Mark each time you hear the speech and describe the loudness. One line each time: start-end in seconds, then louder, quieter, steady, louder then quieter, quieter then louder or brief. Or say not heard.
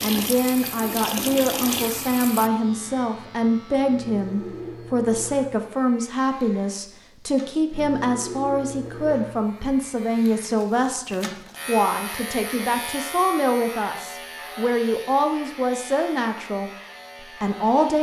0.0-17.9 steady.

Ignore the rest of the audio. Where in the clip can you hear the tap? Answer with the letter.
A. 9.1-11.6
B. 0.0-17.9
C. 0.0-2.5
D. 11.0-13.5
C.